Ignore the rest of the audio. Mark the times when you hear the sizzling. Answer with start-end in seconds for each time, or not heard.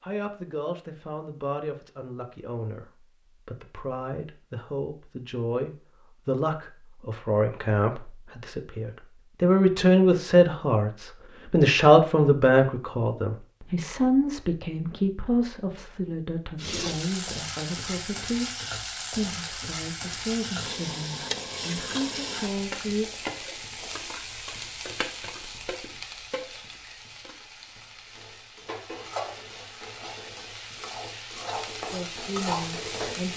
16.6-33.3.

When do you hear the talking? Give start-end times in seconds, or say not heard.
0.0-23.1, 31.9-33.3.